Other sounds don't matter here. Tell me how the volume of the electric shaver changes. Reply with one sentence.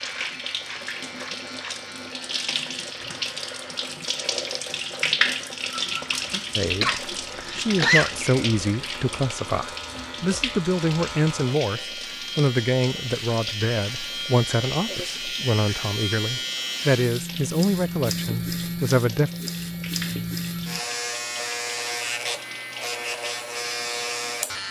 The volume of the electric shaver goes up.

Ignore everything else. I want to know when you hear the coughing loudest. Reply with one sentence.
The volume of the coughing peaks at 8 seconds.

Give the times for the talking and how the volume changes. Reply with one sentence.
The talking can be heard from 6.5 to 19.3 s, at a steady volume.